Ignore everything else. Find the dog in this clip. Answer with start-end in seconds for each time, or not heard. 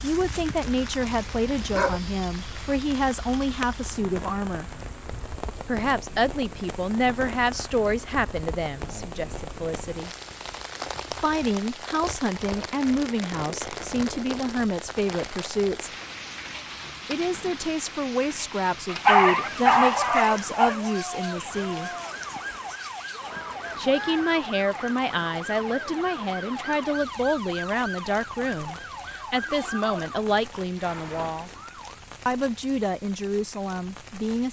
0.2-2.0, 18.9-20.8.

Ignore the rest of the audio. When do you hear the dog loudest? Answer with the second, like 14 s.
19 s.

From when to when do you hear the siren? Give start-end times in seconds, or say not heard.
19.4-32.0.